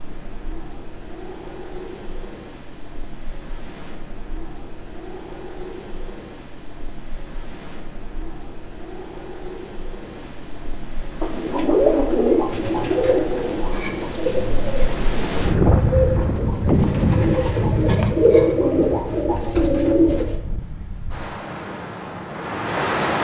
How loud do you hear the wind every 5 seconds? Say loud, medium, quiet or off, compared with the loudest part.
quiet, quiet, medium, loud, medium.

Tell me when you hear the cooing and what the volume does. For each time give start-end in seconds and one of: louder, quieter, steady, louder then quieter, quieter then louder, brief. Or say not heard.
11.2-20.4 quieter then louder.